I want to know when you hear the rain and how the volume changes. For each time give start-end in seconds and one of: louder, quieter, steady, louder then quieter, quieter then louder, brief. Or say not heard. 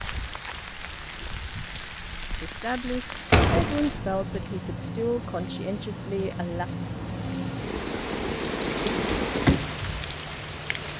0.0-10.9 louder.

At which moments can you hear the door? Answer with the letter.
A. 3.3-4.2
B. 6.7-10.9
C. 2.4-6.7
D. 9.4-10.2
A.